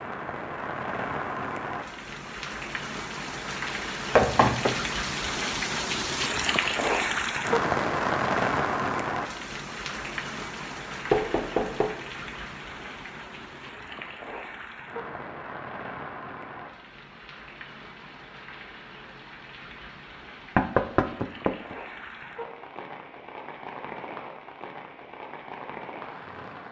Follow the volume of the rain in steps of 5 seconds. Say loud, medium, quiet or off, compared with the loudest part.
medium, loud, medium, quiet, quiet, quiet.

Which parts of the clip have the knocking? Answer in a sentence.
You can hear the knocking from 4.2 to 4.8 s, from 11.1 to 11.9 s and from 20.6 to 21.8 s.